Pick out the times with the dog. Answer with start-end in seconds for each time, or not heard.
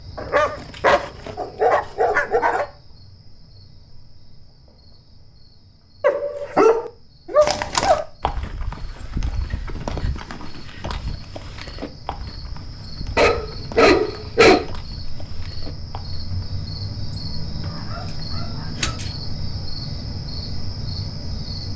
0.1-2.6, 6.0-8.1, 13.2-14.7, 17.6-19.1.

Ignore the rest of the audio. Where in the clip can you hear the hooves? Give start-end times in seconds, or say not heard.
7.4-16.6.